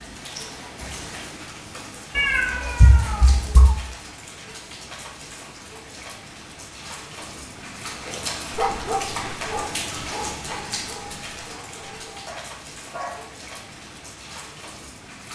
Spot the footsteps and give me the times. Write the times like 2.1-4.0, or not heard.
not heard.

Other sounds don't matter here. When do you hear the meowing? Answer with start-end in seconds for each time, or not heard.
2.1-3.8.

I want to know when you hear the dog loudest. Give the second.
9 s.